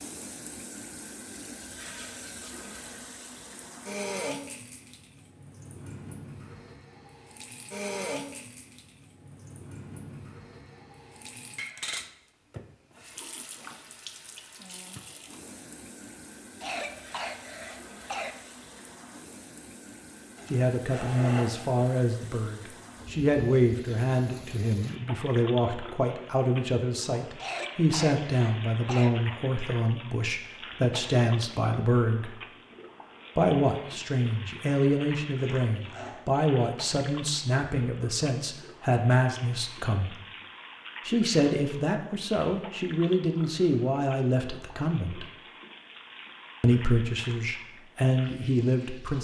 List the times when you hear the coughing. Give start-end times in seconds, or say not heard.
16.6-18.4, 27.4-29.1.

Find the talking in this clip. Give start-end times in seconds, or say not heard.
20.5-32.4, 33.4-40.1, 41.0-45.2, 46.6-49.1.